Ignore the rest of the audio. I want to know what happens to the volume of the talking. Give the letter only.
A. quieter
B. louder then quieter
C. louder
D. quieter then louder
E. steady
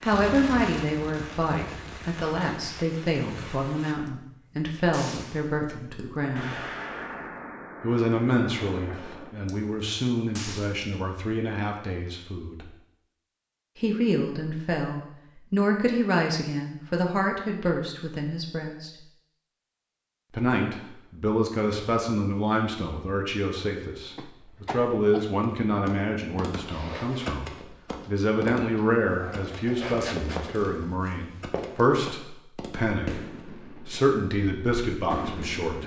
E.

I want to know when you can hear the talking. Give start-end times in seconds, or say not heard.
0.0-6.6, 7.8-12.7, 13.8-18.9, 20.3-35.8.